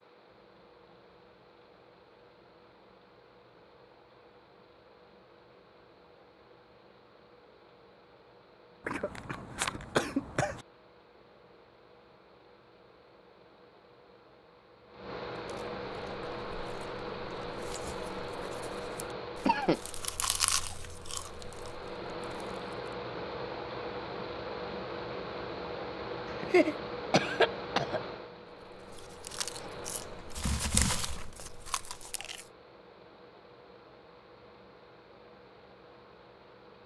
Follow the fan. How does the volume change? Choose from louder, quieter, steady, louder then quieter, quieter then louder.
louder then quieter.